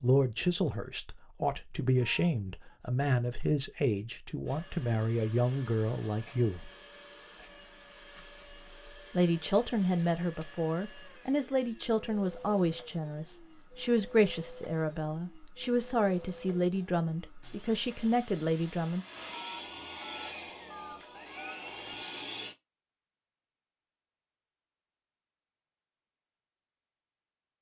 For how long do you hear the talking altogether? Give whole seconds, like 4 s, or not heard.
17 s.